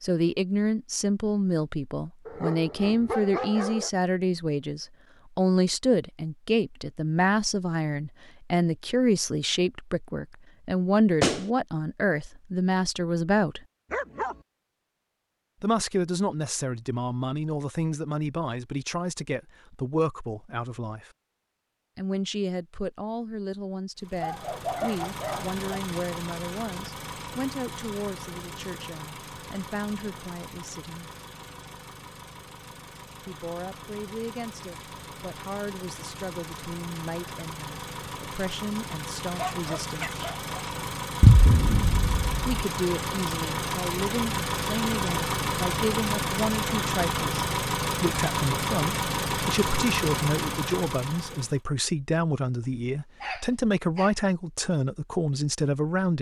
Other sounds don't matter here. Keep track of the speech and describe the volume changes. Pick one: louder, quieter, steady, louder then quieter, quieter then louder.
quieter then louder.